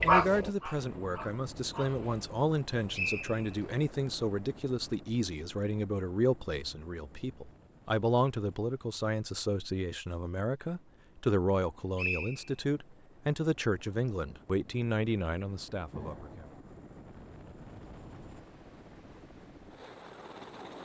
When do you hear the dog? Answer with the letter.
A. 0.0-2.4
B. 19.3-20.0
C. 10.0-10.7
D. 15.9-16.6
A.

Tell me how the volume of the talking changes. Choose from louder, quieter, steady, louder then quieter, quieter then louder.
steady.